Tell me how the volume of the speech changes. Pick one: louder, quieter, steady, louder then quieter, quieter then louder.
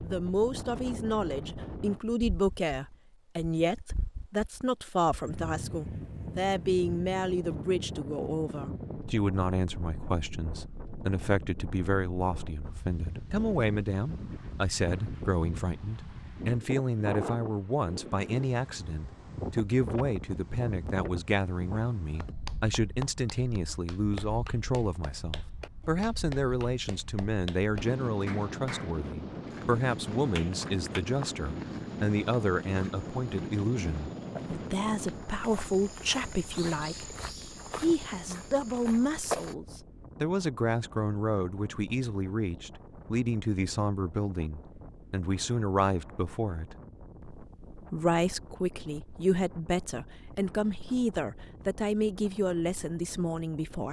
steady.